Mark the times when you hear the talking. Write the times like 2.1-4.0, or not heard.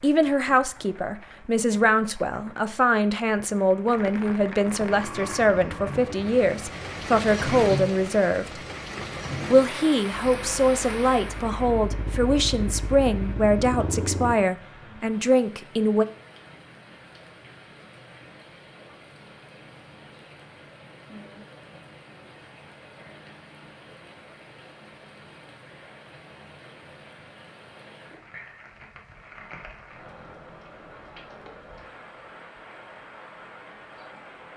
0.0-8.6, 9.5-16.1.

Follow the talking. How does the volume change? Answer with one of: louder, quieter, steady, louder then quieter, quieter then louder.
steady.